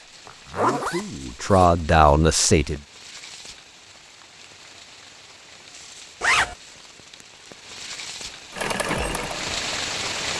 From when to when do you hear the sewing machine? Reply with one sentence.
You can hear the sewing machine from 8.5 to 10.2 s.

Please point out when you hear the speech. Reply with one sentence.
You can hear the speech from 0.0 to 2.8 s.